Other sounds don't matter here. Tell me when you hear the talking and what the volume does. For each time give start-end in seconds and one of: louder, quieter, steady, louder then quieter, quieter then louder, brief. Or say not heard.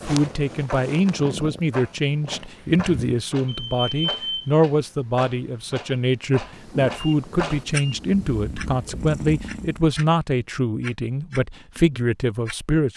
0.0-12.9 steady.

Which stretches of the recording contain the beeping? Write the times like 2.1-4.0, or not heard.
3.5-4.5, 6.5-8.5.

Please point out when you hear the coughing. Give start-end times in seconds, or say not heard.
not heard.